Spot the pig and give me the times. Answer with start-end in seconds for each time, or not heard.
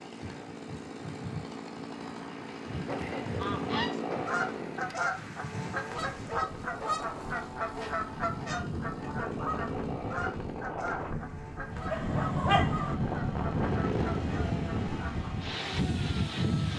not heard.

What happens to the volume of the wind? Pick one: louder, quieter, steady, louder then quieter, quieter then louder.
louder.